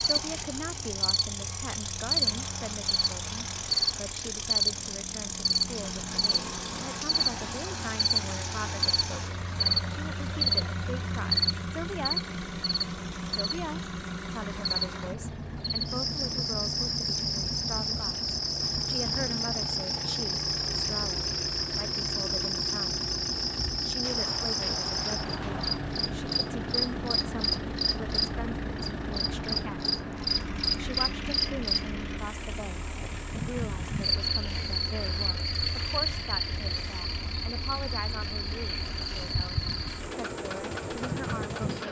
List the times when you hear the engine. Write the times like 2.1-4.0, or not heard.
0.0-41.8.